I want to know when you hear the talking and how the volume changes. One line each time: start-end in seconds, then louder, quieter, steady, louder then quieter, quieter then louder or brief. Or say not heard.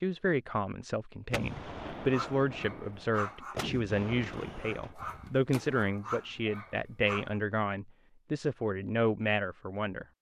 0.0-10.1 steady.